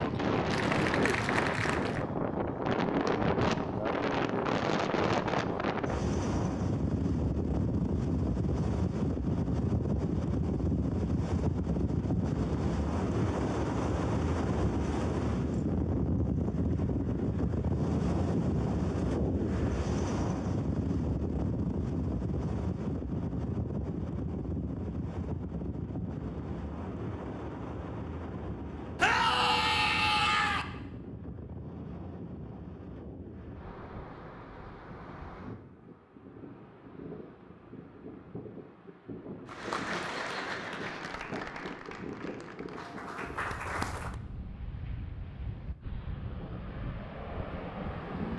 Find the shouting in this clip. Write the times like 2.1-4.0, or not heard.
28.9-30.6.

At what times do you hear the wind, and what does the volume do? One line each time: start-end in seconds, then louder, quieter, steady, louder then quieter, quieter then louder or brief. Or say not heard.
0.0-48.3 quieter.